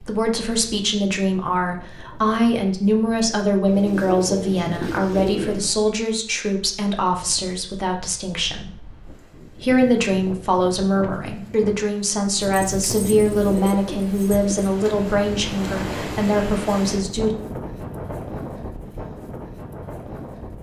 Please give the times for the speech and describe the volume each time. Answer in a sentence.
You can hear the speech from 0.0 to 17.4 s, at a steady volume.